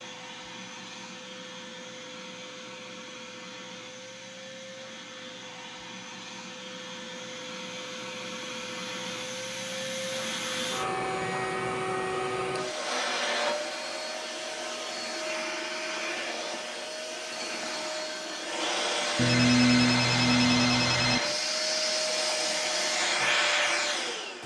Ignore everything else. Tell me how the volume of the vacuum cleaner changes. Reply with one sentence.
The loudness of the vacuum cleaner goes up.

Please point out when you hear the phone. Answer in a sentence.
You can hear the phone from 19.1 to 21.2 s.